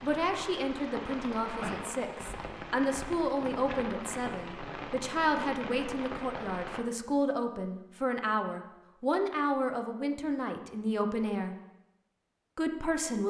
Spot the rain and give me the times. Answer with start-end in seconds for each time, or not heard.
0.0-6.8.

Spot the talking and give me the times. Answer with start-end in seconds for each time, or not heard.
0.0-11.6, 12.6-13.2.